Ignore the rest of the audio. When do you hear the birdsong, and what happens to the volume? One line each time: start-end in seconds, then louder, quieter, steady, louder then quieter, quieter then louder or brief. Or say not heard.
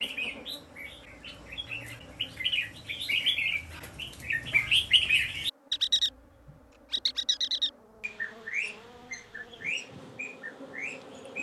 0.0-11.3 louder then quieter.